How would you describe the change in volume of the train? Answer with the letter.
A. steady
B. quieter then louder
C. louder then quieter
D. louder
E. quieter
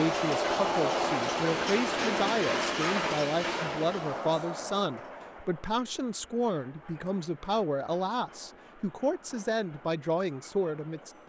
E.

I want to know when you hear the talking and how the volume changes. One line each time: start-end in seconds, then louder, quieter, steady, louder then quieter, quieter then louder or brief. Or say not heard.
0.0-11.2 steady.